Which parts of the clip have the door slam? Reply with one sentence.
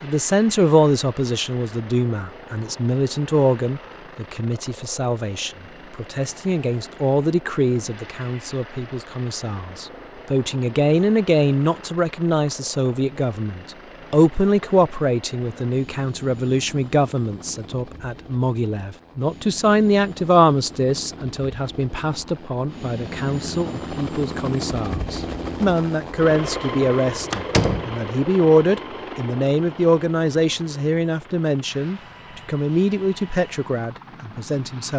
The door slam can be heard from 27.3 to 27.9 s.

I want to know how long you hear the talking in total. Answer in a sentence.
The talking can be heard for 35 seconds in total.